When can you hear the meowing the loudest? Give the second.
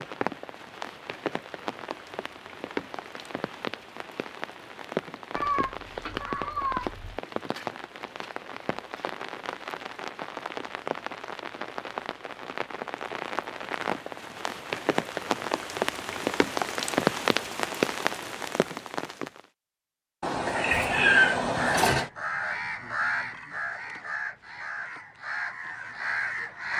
21 s.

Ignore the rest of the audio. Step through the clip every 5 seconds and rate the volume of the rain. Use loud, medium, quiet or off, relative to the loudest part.
medium, medium, medium, loud, off, off.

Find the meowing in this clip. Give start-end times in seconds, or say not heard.
5.3-7.2, 20.2-22.1.